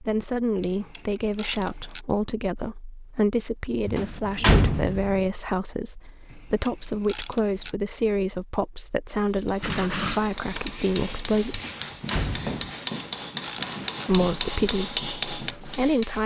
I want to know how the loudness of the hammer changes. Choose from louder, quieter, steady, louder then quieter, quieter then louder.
louder.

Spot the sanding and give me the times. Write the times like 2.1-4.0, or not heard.
9.6-15.8.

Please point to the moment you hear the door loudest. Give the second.
5 s.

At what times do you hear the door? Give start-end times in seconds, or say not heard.
3.9-5.2, 11.5-12.6.